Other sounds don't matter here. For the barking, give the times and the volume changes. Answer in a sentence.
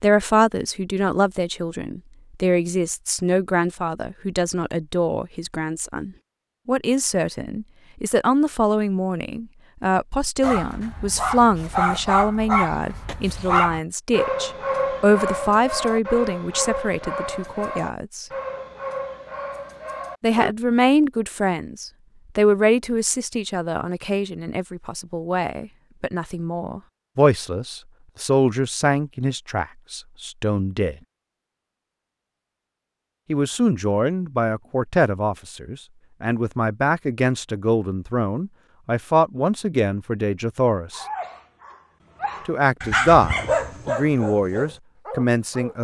You can hear the barking from 10.4 to 20.6 s, getting quieter; and from 40.9 to 45.7 s, getting louder then quieter.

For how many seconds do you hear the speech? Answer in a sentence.
You can hear the speech for 40 seconds altogether.